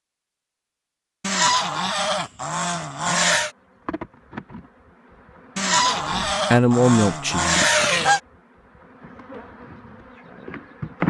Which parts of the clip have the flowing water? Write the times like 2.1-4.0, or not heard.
not heard.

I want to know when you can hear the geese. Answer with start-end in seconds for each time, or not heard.
1.2-3.5, 5.5-8.2.